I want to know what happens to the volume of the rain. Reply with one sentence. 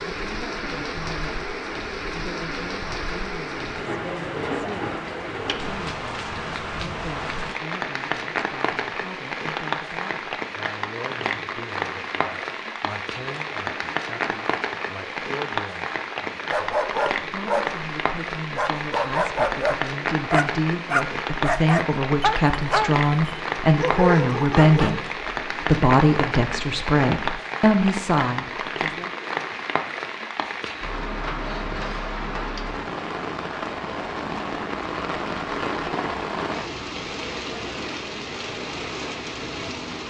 The volume of the rain stays about the same.